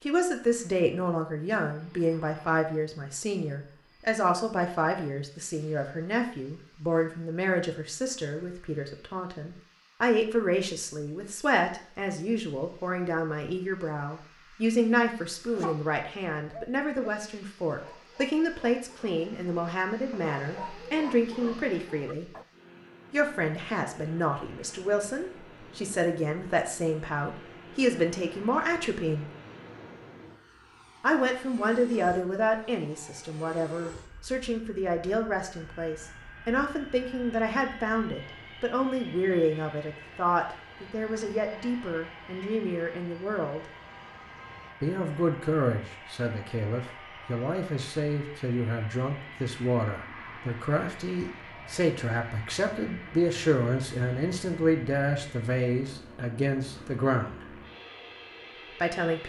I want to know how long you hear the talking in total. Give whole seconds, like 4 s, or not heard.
54 s.